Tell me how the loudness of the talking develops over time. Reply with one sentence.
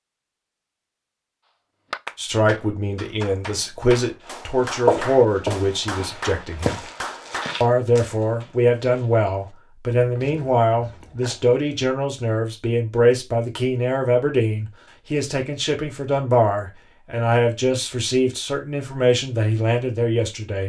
The volume of the talking stays about the same.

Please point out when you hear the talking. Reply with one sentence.
You can hear the talking from 2.1 to 6.8 s and from 7.6 to 20.6 s.